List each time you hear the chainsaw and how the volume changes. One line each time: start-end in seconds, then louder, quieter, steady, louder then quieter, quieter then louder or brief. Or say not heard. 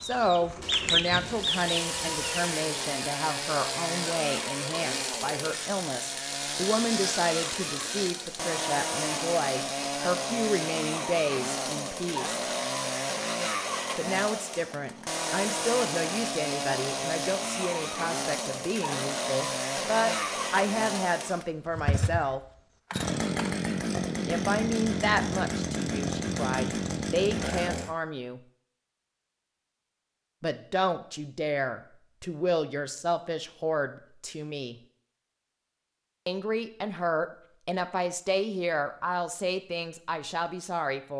0.0-27.9 steady.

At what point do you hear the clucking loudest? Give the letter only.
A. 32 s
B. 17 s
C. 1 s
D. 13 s
C.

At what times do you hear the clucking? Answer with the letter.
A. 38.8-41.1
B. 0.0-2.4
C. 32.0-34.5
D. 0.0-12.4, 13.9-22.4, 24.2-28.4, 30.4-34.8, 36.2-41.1
B.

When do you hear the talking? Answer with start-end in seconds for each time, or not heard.
0.0-12.4, 13.9-22.4, 24.2-28.4, 30.4-34.8, 36.2-41.1.